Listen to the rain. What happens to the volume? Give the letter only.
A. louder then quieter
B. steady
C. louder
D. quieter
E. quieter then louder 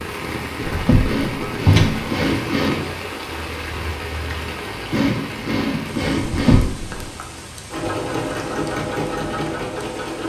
D.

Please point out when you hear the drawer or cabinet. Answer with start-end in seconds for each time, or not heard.
0.7-2.0, 6.2-7.1.